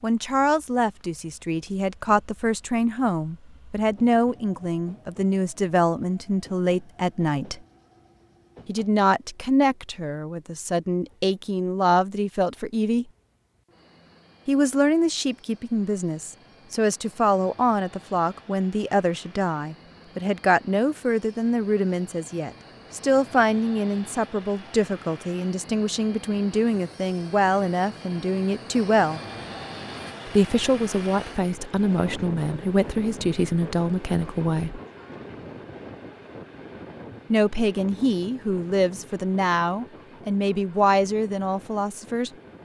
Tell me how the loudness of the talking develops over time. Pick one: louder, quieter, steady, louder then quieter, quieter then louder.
steady.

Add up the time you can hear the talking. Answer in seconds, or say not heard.
36 s.